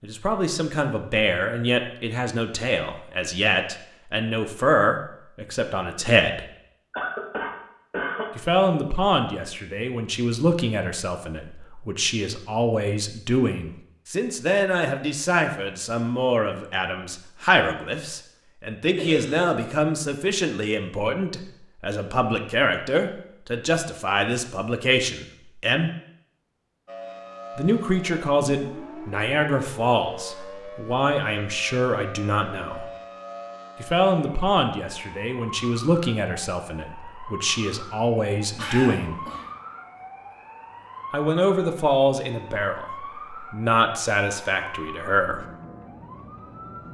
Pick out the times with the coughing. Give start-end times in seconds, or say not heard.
6.9-8.3, 18.9-19.6, 38.5-39.5.